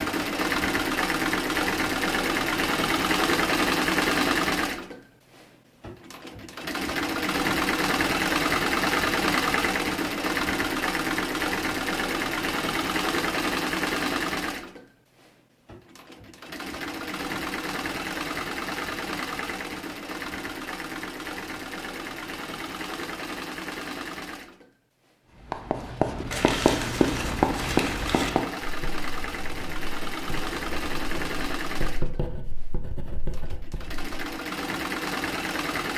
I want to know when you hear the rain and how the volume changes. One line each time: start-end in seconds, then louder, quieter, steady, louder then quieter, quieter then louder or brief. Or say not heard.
not heard.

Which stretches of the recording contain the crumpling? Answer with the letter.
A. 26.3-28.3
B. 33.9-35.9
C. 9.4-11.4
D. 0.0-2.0
A.